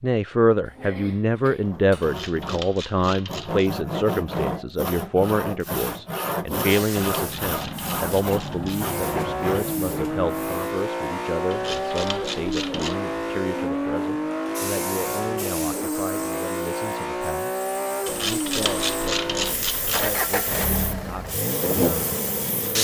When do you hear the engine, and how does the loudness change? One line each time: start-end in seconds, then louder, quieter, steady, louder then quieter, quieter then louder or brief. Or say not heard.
8.9-22.7 steady.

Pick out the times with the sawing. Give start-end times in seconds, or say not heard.
1.6-9.8.